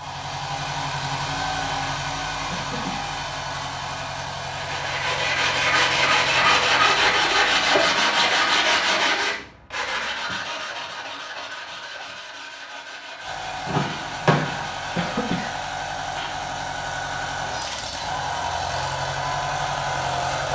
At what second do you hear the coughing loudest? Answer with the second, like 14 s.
15 s.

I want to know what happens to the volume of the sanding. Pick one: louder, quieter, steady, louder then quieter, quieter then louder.
quieter.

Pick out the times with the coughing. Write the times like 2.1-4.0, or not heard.
2.5-3.1, 14.9-15.6.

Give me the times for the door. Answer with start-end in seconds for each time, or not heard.
13.7-14.7.